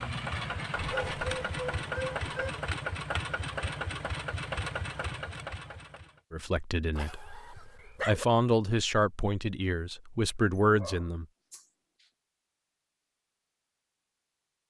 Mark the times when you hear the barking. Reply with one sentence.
The barking can be heard from 0.7 to 2.6 s, from 7.0 to 8.2 s and from 10.6 to 12.1 s.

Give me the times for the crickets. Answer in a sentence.
You can't hear the crickets here.